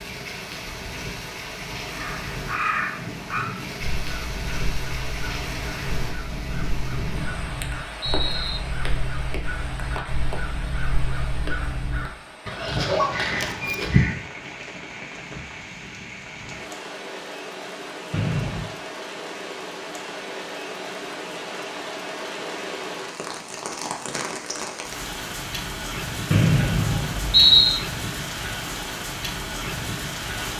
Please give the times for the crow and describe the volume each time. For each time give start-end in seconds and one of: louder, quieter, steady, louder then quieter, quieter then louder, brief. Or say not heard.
1.9-14.2 quieter then louder.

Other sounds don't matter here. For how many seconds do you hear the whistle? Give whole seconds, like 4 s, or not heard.
4 s.